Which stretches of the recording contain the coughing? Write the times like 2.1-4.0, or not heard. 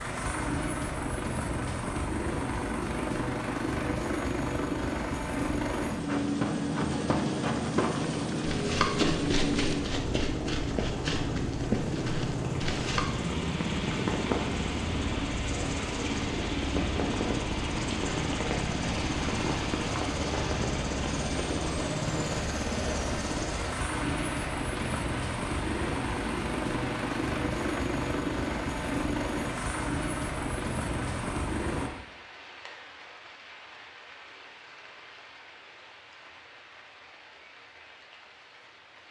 not heard.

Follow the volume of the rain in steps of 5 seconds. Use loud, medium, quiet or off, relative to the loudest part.
off, off, loud, loud, loud, medium, quiet, quiet.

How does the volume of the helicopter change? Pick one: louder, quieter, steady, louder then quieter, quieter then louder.
steady.